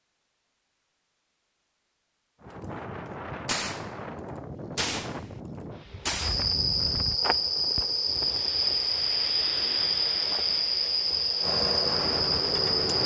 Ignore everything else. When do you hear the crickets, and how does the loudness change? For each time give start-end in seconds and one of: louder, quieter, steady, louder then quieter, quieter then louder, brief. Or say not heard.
6.2-13.0 steady.